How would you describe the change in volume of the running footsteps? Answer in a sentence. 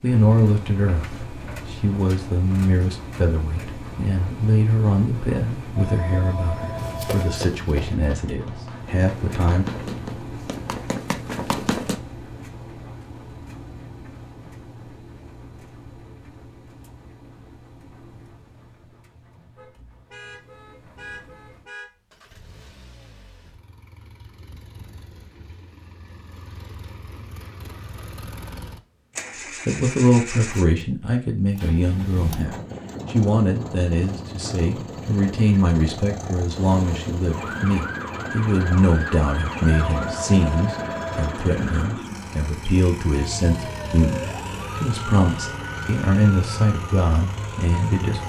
The volume of the running footsteps goes down, then up.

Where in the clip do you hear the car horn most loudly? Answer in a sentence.
The volume of the car horn peaks at 21 seconds.